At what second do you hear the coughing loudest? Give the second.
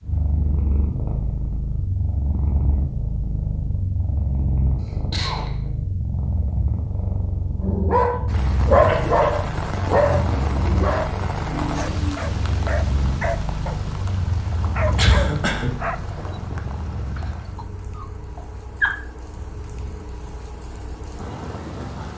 15 s.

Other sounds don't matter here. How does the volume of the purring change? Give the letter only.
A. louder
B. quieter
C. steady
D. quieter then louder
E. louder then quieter
B.